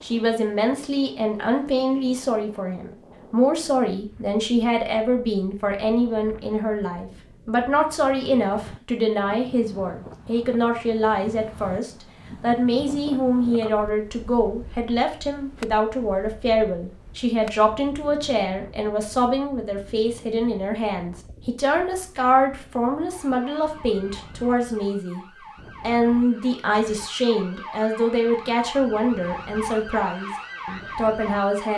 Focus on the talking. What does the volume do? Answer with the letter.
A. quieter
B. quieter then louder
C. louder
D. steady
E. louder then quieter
D.